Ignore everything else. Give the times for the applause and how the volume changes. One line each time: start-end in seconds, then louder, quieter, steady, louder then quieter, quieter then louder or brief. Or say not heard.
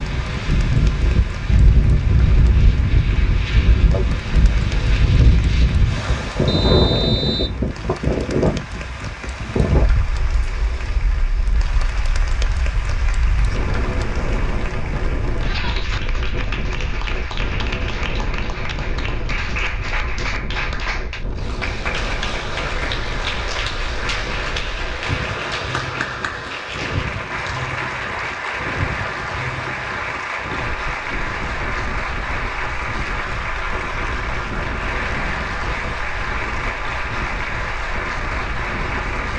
0.0-39.3 louder.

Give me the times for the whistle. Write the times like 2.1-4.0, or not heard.
6.5-7.6.